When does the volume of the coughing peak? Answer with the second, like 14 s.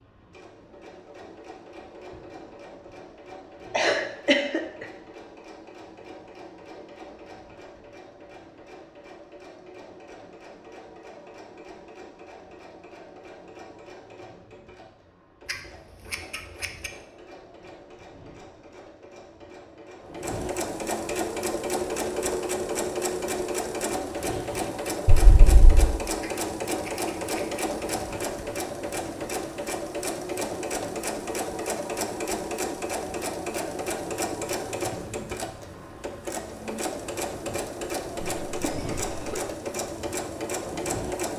4 s.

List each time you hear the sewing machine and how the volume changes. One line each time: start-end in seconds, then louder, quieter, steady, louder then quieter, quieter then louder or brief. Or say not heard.
0.0-41.3 louder.